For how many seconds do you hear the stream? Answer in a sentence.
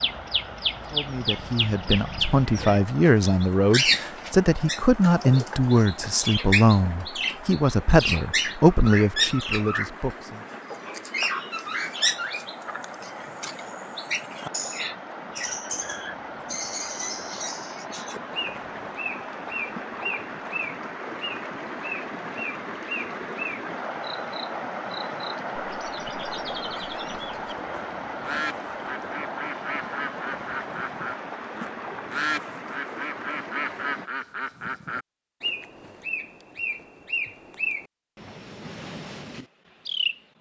The stream can be heard for 34 seconds in total.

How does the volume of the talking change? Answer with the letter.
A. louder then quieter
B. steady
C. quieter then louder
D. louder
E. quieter
B.